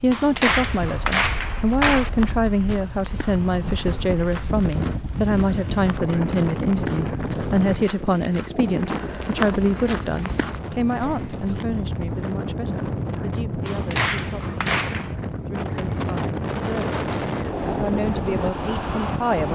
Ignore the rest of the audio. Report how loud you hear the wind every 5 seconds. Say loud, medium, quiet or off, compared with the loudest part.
medium, loud, loud, loud.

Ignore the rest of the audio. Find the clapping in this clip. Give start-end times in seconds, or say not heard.
0.1-2.1, 13.7-15.2.